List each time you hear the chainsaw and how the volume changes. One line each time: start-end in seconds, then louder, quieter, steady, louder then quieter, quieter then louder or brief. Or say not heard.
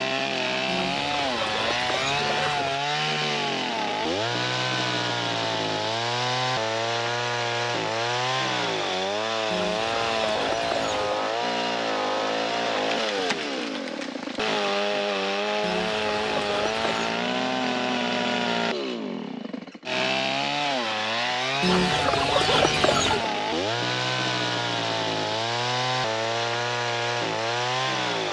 0.0-28.2 steady.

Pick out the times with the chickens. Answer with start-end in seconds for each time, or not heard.
0.7-2.8, 9.5-11.2, 15.6-17.0, 21.6-23.3.